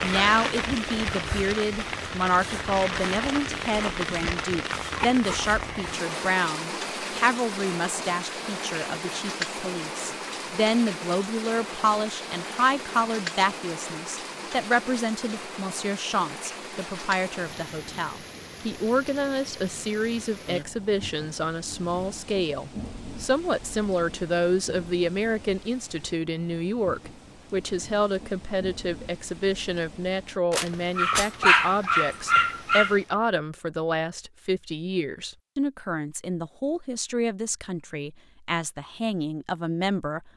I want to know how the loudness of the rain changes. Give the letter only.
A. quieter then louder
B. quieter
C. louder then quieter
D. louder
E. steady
B.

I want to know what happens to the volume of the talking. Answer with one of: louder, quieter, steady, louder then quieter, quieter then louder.
steady.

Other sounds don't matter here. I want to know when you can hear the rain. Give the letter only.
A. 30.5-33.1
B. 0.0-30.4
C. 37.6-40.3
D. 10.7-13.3
B.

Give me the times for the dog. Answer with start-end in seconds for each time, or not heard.
30.5-33.1.